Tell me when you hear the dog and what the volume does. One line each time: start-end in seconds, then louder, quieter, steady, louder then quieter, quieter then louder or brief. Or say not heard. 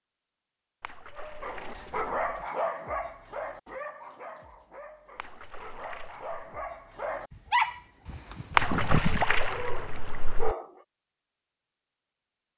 1.1-10.8 quieter then louder.